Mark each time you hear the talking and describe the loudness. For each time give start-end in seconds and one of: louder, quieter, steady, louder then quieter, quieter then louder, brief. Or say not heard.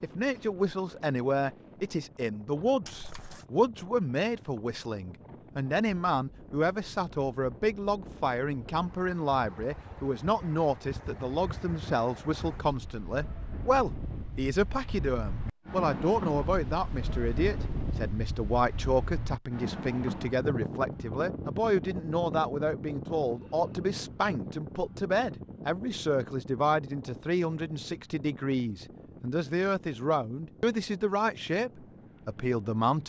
0.0-33.0 steady.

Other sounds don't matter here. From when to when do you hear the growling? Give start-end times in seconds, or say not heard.
not heard.